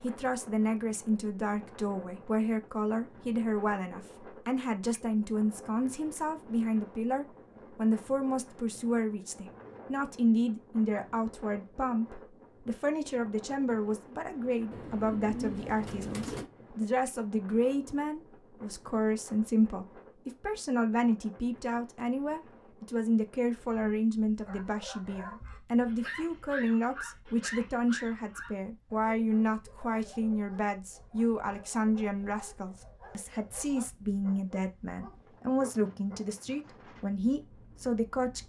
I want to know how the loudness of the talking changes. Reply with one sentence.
The volume of the talking stays about the same.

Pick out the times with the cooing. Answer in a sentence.
The cooing can be heard from 14.7 to 16.5 s.